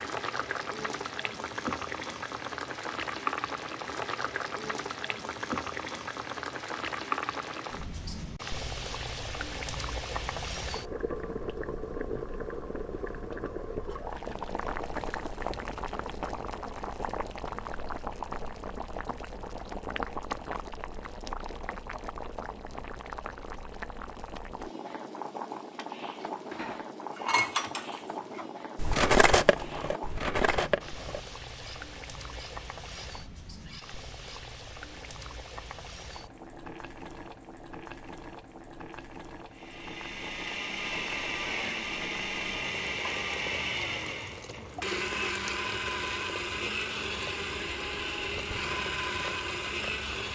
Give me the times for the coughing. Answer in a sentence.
You can't hear the coughing here.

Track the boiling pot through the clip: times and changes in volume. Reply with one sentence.
You can hear the boiling pot from 0.0 to 50.3 s, getting quieter.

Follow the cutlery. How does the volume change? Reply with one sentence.
The loudness of the cutlery goes up, then down.